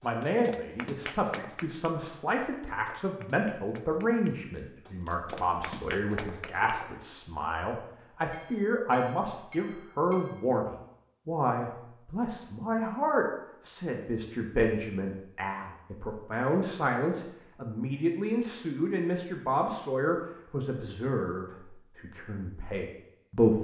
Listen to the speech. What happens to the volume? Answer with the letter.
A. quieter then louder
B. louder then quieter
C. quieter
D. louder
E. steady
E.